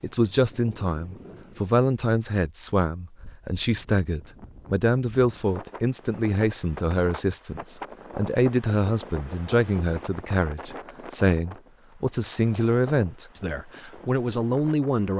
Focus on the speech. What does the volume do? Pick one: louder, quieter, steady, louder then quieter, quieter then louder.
steady.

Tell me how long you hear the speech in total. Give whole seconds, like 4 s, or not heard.
15 s.